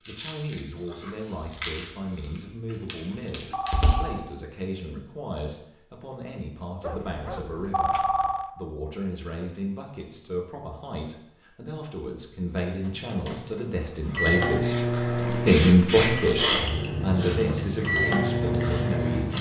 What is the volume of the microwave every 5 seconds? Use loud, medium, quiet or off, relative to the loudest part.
off, off, loud, loud.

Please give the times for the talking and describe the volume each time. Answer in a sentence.
The talking can be heard from 0.1 to 19.3 s, getting louder.